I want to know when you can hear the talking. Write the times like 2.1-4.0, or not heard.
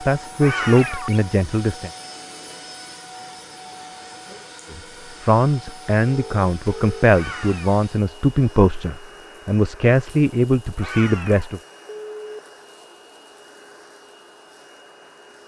0.0-1.9, 4.7-11.6.